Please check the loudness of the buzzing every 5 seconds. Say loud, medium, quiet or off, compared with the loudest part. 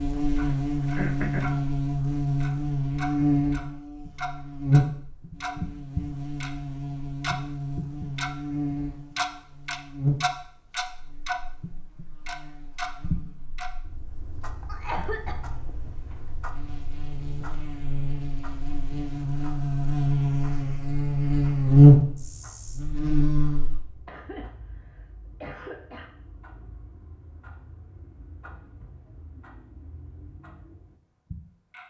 medium, quiet, quiet, quiet, loud, off, off.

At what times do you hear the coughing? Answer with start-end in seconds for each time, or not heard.
0.4-1.6, 14.7-16.1, 24.1-26.1.